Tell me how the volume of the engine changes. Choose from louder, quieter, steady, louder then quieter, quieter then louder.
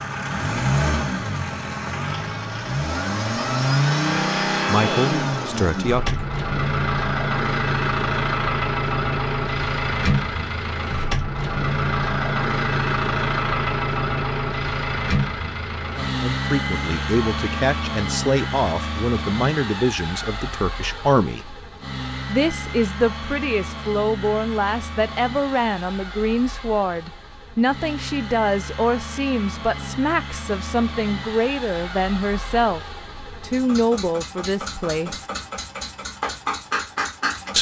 quieter.